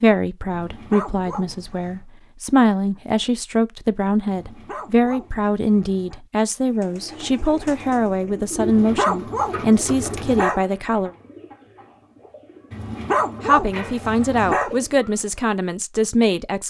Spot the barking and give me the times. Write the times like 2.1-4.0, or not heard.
0.5-2.0, 4.3-6.2, 8.6-10.6, 12.7-14.7.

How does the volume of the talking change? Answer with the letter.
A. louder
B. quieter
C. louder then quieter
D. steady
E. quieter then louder
D.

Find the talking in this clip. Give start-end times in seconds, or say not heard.
0.0-11.1, 13.4-16.6.